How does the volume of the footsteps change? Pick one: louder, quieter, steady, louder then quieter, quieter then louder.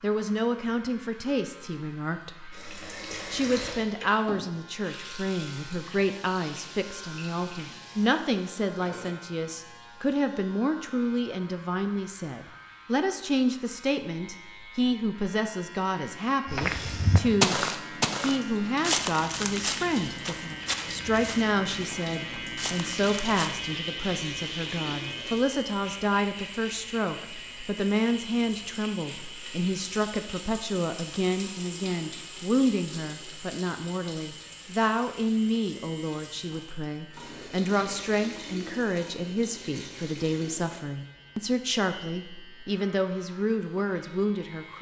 quieter.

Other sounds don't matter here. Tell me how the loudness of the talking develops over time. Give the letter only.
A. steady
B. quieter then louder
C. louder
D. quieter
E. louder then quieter
A.